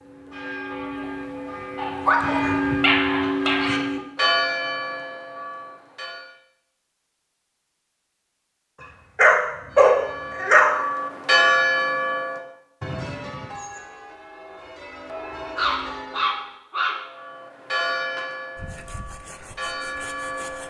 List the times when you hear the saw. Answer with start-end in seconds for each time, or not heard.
18.6-20.6.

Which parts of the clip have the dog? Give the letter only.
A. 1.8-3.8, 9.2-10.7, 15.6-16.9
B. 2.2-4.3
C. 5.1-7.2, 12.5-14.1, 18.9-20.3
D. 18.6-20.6
A.